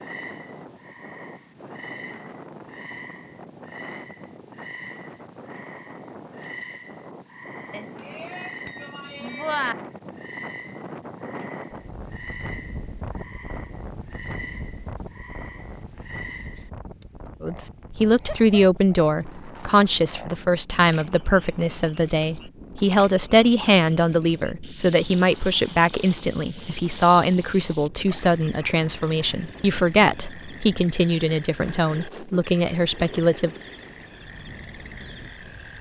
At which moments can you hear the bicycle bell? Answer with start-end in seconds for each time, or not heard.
7.7-9.8.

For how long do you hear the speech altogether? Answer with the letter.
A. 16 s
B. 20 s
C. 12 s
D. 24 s
A.